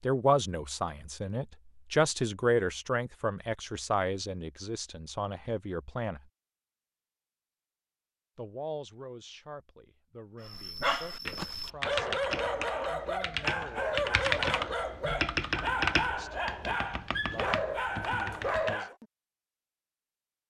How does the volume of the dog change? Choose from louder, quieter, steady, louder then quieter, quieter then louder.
steady.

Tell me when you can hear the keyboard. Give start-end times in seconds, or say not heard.
11.2-18.8.